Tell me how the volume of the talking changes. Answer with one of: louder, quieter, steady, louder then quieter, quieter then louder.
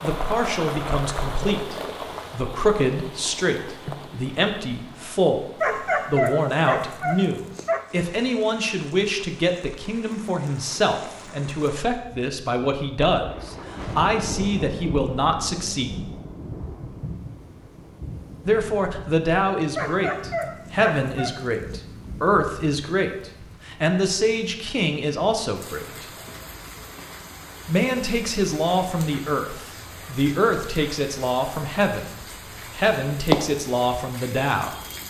steady.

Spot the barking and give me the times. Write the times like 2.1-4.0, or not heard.
5.6-7.8, 19.8-21.8.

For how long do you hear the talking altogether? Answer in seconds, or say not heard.
31 s.